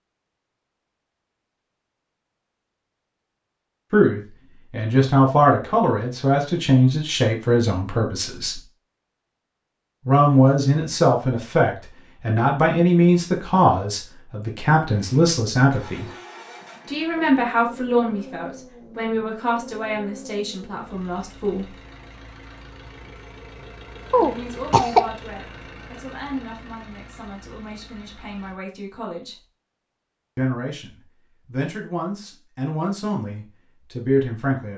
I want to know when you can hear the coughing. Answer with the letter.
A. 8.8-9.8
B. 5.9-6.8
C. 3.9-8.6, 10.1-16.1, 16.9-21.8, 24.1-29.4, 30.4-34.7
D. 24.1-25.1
D.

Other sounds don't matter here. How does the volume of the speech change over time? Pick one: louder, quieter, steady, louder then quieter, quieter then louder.
quieter then louder.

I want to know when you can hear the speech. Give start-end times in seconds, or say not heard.
3.9-8.6, 10.1-16.1, 16.9-21.8, 24.1-29.4, 30.4-34.7.